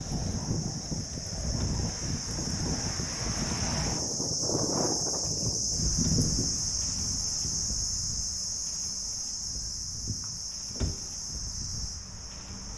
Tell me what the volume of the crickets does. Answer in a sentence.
The loudness of the crickets goes up, then down.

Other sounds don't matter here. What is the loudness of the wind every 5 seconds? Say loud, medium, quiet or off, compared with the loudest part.
loud, medium, quiet.